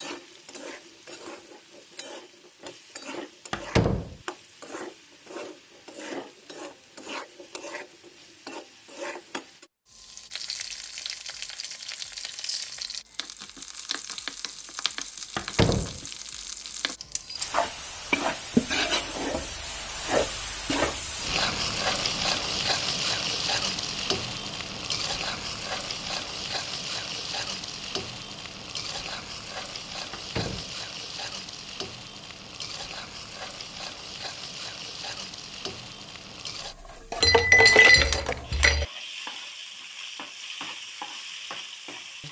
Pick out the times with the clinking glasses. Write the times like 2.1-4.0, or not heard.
37.2-38.9.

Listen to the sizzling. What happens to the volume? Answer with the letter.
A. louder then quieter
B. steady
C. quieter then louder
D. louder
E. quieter
A.